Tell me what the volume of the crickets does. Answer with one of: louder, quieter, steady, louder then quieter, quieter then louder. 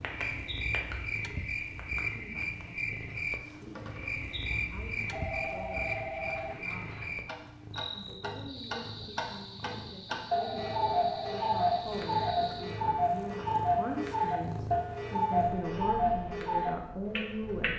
quieter.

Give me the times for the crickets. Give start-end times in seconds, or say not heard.
0.0-12.8.